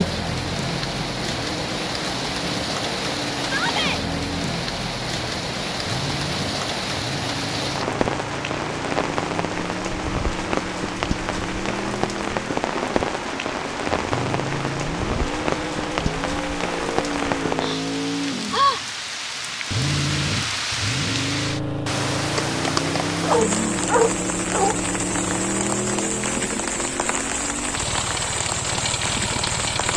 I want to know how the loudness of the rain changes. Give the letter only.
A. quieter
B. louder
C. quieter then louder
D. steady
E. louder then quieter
D.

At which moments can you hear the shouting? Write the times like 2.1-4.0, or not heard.
3.4-4.0.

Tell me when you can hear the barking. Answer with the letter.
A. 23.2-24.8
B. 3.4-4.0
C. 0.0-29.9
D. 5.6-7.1
A.